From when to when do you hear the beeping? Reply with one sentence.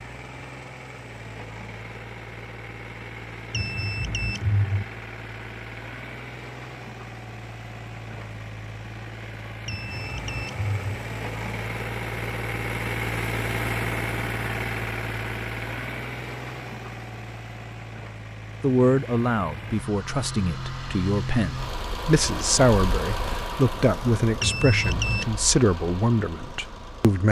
The beeping can be heard from 3.5 to 4.8 s, from 9.7 to 10.9 s and from 24.4 to 25.2 s.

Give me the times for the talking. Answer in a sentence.
You can hear the talking from 18.6 to 27.2 s.